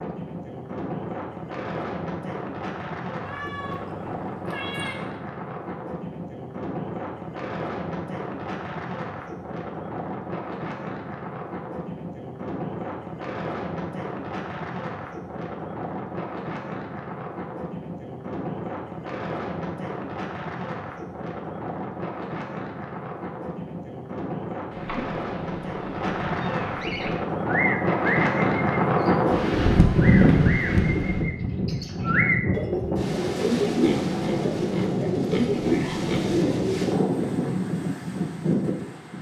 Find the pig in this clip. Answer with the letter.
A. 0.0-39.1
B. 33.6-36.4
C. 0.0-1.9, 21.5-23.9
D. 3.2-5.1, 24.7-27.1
B.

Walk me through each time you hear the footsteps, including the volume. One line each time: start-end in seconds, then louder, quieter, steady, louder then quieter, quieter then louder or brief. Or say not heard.
not heard.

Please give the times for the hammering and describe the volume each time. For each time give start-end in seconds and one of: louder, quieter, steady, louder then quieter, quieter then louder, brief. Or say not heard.
not heard.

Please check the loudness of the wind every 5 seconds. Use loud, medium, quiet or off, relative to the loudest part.
medium, medium, medium, medium, medium, loud, loud, loud.